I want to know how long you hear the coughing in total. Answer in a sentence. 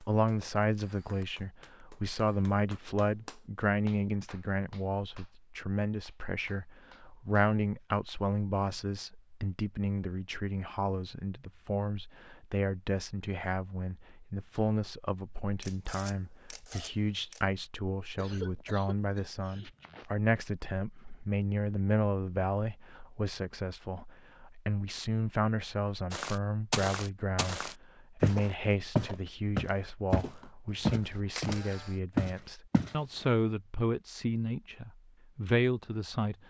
The coughing can be heard for 2 seconds in total.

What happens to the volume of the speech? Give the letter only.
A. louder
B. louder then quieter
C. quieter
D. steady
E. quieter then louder
D.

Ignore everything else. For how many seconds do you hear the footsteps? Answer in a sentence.
The footsteps can be heard for 7 seconds in total.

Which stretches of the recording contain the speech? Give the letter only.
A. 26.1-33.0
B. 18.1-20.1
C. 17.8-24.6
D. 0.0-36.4
D.